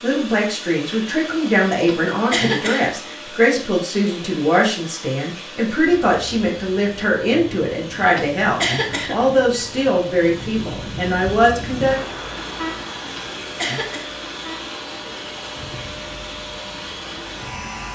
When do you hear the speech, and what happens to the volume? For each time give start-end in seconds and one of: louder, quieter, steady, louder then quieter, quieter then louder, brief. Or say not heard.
0.0-11.9 steady.